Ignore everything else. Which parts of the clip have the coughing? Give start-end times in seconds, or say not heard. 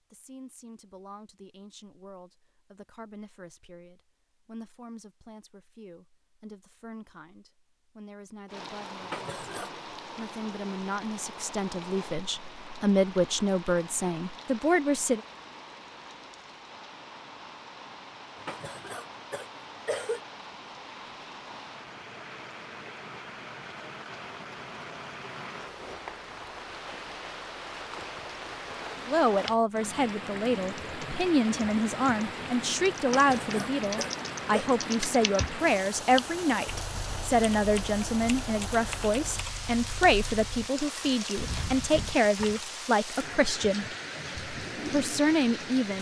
9.0-9.8, 18.4-20.2, 33.0-34.7.